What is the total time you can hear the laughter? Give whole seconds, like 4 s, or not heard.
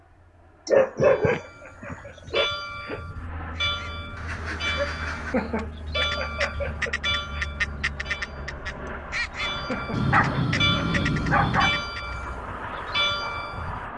6 s.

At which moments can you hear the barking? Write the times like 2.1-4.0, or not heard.
0.7-2.5, 4.8-5.5, 9.9-11.8.